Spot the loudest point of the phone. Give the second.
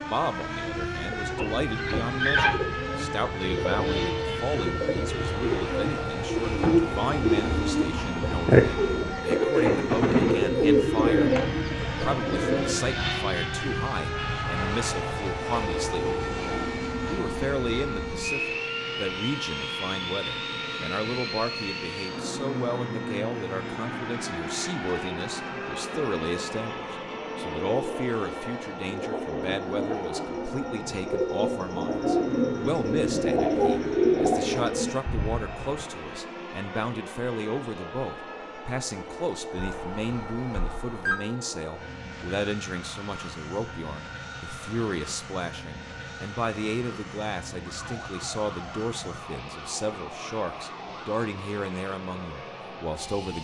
41 s.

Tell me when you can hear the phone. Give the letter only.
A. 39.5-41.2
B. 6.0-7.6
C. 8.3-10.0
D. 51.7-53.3
A.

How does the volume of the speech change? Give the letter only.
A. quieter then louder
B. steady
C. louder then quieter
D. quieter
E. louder
B.